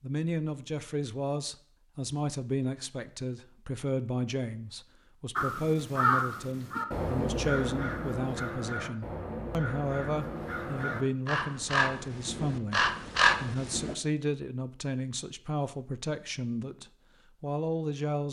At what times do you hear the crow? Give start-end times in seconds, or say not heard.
5.3-13.9.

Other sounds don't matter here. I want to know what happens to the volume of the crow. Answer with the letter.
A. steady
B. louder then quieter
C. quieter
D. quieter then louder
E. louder
D.